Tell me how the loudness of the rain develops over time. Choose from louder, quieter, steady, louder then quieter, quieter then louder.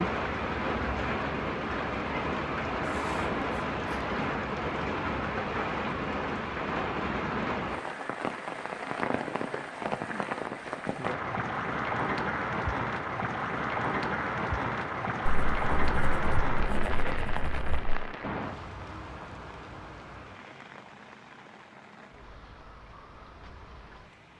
quieter.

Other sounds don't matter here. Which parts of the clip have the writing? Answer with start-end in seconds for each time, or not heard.
2.8-4.0, 15.2-18.0.